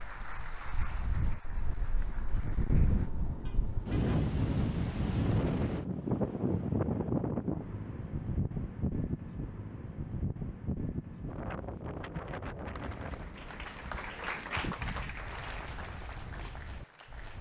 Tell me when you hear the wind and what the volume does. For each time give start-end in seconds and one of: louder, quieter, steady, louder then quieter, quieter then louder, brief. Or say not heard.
0.0-17.3 louder then quieter.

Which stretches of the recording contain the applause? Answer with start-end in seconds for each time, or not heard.
0.0-3.1, 12.7-17.3.